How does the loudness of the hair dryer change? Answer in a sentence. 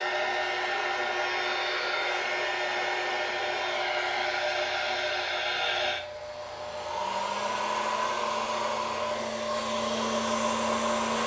The volume of the hair dryer stays about the same.